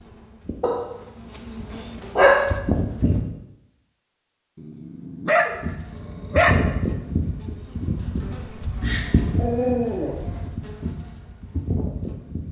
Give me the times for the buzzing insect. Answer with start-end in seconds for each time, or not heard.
0.0-3.2, 5.5-12.4.